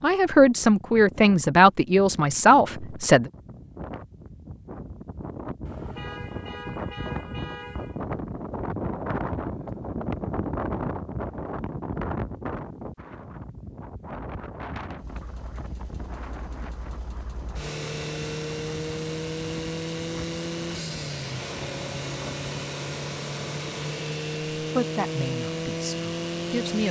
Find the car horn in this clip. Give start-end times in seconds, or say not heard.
5.7-8.1.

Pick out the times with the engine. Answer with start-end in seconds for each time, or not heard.
14.9-26.8.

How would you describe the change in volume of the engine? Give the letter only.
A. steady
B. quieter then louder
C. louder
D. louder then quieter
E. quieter
C.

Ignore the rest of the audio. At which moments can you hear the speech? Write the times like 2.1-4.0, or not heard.
0.0-3.3, 24.6-26.8.